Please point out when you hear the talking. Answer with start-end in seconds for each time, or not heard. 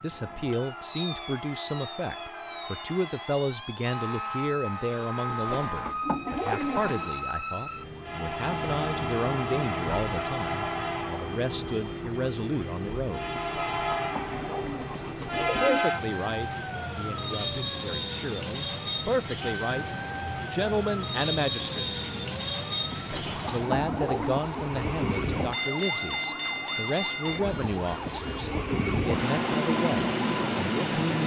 0.0-13.3, 15.6-21.9, 23.4-31.2.